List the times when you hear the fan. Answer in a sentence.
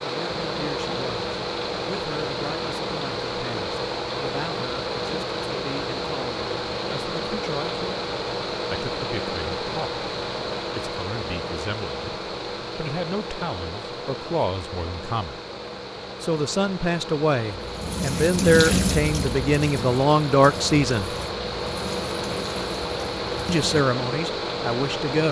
You can hear the fan from 0.0 to 25.2 s.